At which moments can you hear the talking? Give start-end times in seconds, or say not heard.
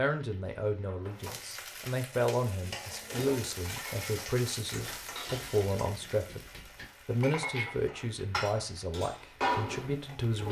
0.0-10.4.